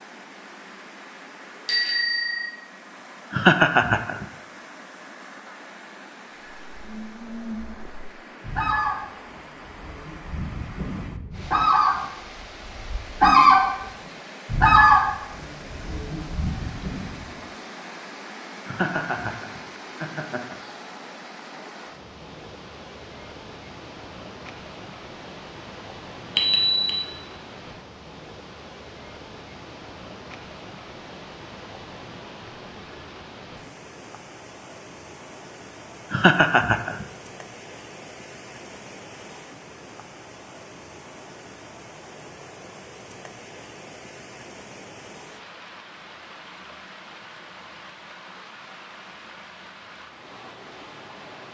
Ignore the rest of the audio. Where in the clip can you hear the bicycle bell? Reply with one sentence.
The bicycle bell can be heard from 1.6 to 2.5 s and from 26.4 to 27.0 s.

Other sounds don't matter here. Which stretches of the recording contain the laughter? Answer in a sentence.
You can hear the laughter from 3.3 to 4.2 s, from 18.6 to 20.6 s and from 36.1 to 37.0 s.